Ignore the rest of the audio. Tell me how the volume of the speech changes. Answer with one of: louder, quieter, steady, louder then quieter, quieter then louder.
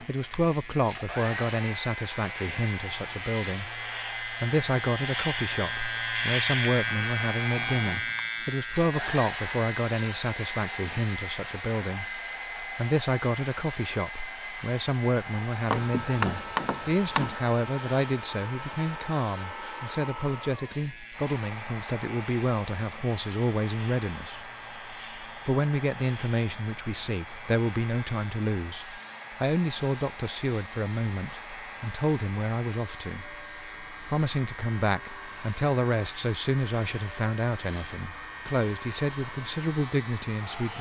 steady.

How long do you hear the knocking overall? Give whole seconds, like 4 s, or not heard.
2 s.